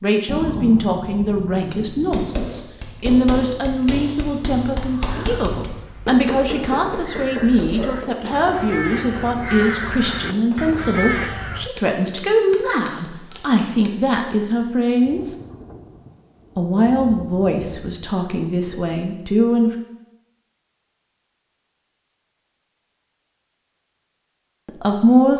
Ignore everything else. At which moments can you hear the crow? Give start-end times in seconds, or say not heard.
5.0-11.7.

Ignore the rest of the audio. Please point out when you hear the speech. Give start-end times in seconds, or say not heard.
0.0-15.3, 16.6-19.7, 24.6-25.3.